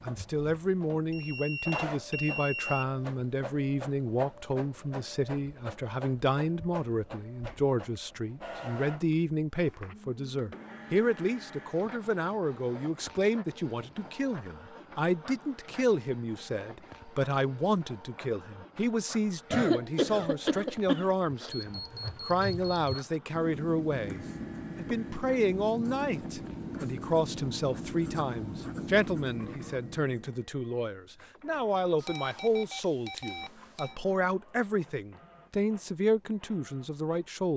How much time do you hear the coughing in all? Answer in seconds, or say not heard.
2 s.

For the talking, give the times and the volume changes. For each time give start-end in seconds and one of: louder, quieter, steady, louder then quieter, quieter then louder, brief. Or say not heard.
0.0-37.5 steady.